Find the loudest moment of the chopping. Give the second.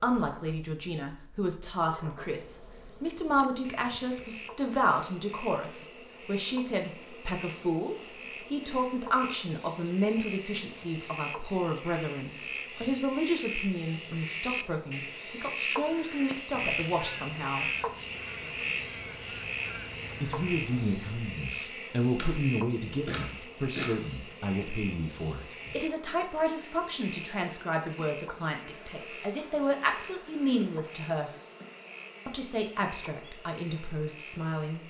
24 s.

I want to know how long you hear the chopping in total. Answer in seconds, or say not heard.
2 s.